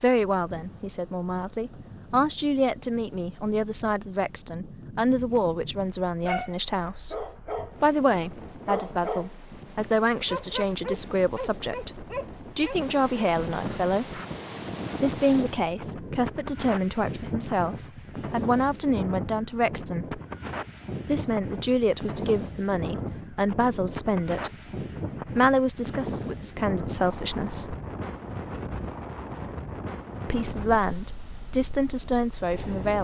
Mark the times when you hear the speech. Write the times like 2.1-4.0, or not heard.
0.0-7.2, 7.8-14.2, 15.0-20.2, 21.1-24.5, 25.4-27.8, 30.2-33.0.